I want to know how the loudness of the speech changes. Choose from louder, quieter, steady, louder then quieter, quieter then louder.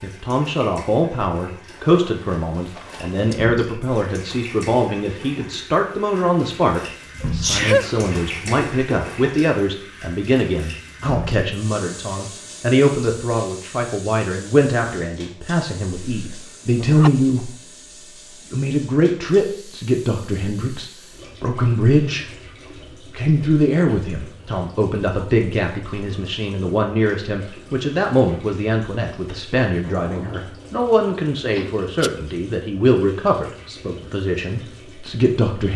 steady.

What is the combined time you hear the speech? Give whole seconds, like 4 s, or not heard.
34 s.